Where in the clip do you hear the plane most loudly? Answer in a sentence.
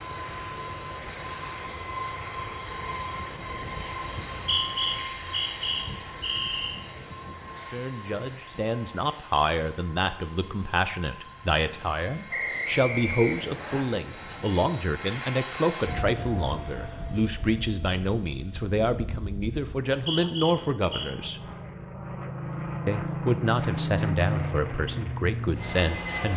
The loudest moment of the plane is at 24 seconds.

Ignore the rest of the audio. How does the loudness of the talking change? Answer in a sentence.
The volume of the talking stays about the same.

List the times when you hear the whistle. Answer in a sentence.
You can hear the whistle from 4.2 to 6.8 s, from 12.3 to 13.8 s and from 19.9 to 21.1 s.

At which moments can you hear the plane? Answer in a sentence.
The plane can be heard from 0.0 to 26.3 s.